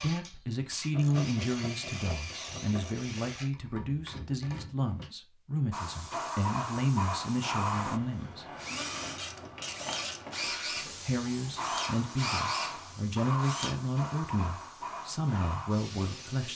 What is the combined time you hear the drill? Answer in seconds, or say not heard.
11 s.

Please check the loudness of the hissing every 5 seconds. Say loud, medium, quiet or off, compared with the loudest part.
off, loud, loud, medium.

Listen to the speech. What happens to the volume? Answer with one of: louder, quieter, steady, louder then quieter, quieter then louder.
steady.